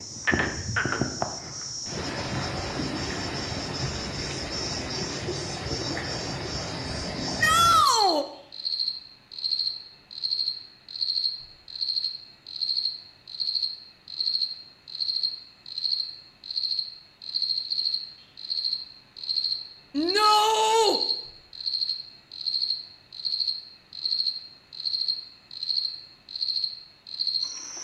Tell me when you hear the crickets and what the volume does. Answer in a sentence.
The crickets can be heard from 0.0 to 27.7 s, at a steady volume.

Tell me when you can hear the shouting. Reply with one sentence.
The shouting can be heard from 7.4 to 8.2 s and from 19.9 to 21.0 s.